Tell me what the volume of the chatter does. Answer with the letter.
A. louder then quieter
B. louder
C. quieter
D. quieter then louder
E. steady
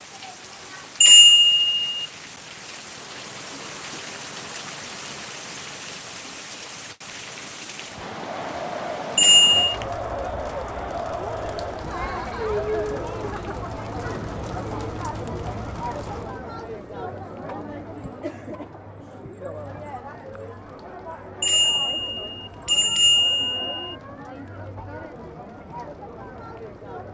C.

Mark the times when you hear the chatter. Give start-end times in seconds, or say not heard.
8.0-27.0.